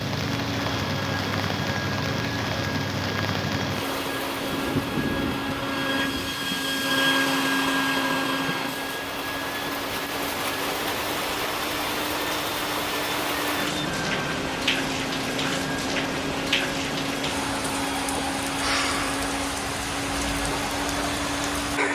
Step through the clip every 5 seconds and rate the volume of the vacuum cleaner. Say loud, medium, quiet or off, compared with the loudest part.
medium, loud, medium, medium, medium.